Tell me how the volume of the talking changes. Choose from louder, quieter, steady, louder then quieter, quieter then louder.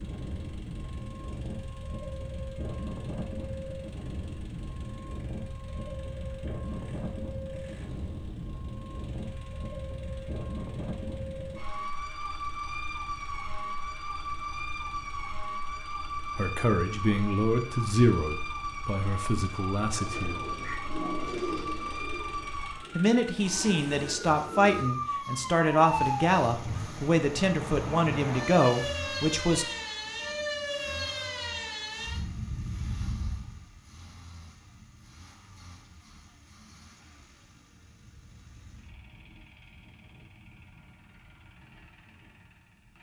quieter then louder.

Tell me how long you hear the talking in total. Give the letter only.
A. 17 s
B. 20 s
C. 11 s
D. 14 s
C.